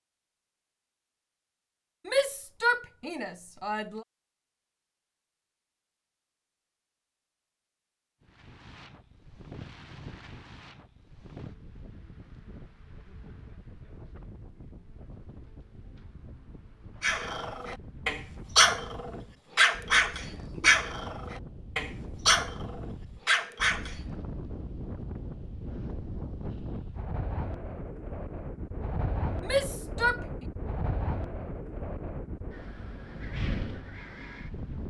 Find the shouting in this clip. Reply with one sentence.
The shouting can be heard from 2.0 to 4.0 s and from 29.4 to 30.4 s.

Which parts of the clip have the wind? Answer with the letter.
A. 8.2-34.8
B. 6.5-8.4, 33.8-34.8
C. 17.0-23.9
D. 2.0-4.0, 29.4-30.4
A.